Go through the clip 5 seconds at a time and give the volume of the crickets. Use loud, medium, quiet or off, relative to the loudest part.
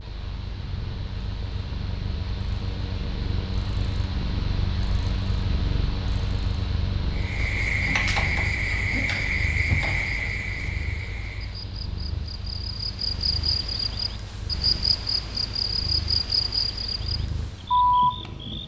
off, loud, medium, loud.